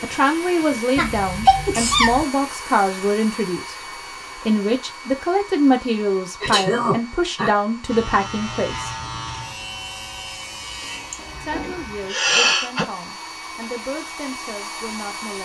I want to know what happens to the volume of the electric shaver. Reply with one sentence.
The loudness of the electric shaver goes down.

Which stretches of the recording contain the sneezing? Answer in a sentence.
The sneezing can be heard from 0.9 to 2.2 s, from 6.4 to 7.5 s and from 11.1 to 12.8 s.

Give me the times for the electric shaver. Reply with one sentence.
You can hear the electric shaver from 7.8 to 12.2 s.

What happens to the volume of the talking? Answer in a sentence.
The volume of the talking goes down.